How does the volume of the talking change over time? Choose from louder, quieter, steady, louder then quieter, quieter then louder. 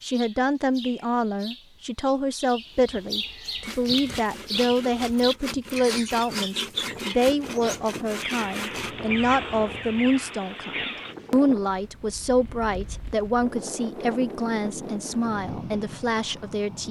steady.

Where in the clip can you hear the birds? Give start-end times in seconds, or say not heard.
0.0-11.2.